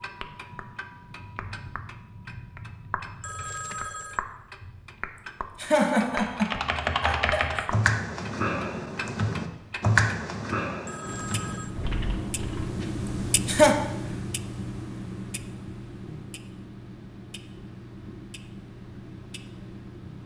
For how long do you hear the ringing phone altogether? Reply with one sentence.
The ringing phone can be heard for 2 seconds in total.